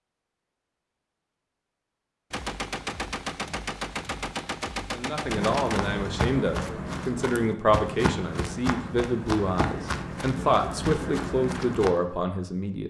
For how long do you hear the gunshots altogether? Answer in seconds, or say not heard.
4 s.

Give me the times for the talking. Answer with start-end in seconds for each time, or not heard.
4.9-12.8.